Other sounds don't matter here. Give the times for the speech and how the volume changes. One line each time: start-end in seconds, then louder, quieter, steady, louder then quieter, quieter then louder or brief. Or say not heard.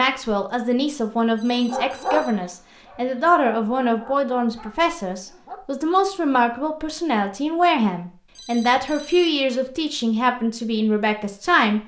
0.0-11.8 steady.